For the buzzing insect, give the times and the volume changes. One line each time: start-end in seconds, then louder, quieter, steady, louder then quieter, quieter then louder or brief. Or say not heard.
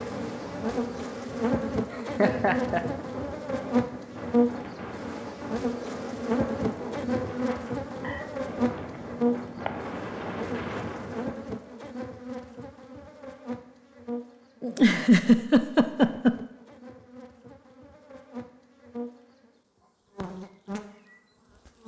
0.0-21.8 quieter.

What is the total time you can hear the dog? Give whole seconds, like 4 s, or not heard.
not heard.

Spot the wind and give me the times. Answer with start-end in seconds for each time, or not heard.
0.0-11.4.